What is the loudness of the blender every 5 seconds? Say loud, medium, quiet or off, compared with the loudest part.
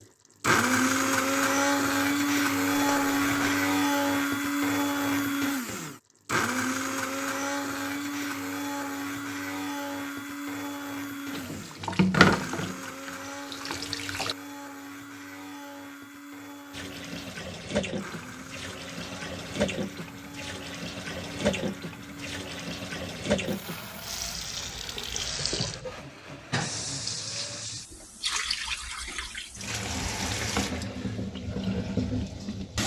loud, medium, quiet, quiet, quiet, quiet, off.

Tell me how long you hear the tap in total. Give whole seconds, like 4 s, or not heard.
19 s.